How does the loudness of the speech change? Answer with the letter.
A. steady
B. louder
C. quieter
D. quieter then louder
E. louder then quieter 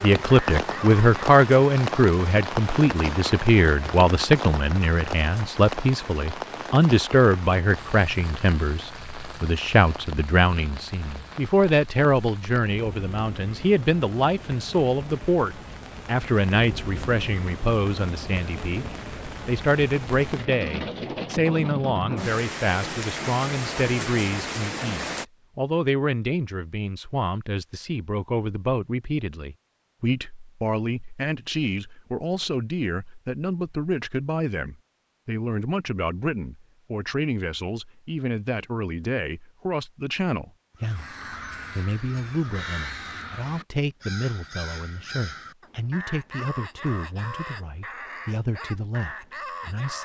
C.